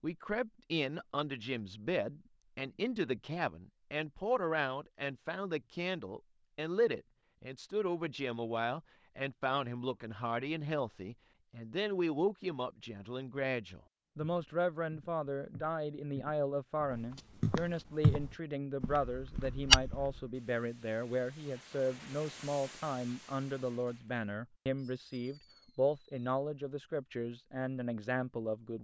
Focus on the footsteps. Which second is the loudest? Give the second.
20 s.